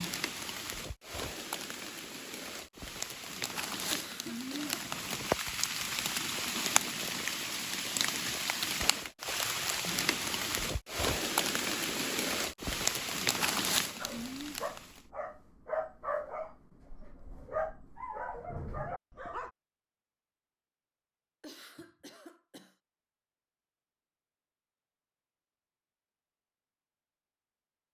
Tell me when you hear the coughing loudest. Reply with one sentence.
The loudest moment of the coughing is at 4 seconds.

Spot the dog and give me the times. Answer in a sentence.
You can hear the dog from 13.9 to 19.5 s.